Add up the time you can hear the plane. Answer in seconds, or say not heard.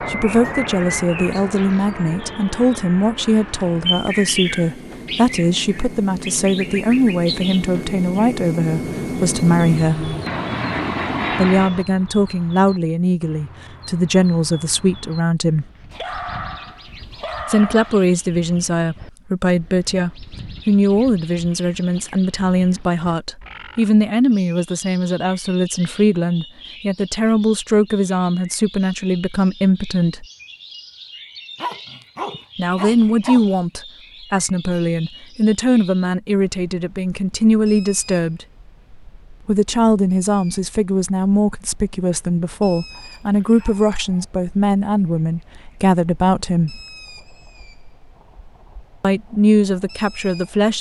12 s.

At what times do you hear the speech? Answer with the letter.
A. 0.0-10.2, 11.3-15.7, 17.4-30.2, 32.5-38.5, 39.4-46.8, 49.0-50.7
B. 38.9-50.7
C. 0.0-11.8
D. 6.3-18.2
A.